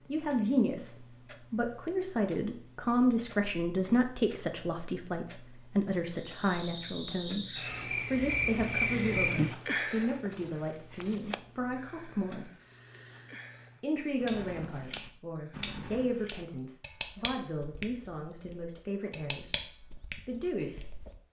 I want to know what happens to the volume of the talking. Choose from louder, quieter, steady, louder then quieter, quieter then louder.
quieter.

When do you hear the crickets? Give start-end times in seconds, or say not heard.
6.2-21.2.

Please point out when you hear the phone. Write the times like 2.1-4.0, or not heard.
not heard.